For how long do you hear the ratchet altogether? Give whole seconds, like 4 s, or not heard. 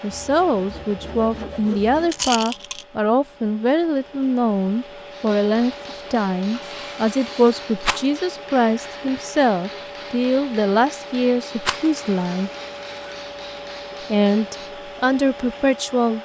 not heard.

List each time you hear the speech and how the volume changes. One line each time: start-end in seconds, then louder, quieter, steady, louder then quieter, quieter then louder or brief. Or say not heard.
0.0-12.5 steady
14.1-16.1 brief.